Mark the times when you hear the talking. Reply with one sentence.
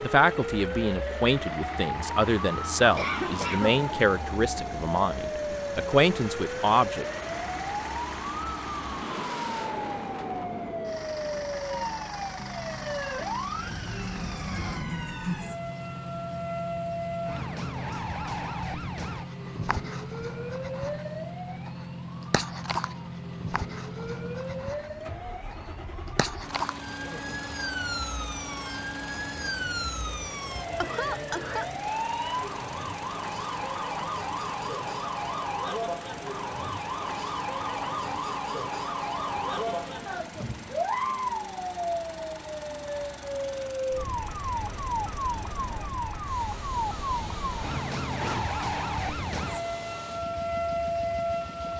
You can hear the talking from 0.0 to 7.0 s.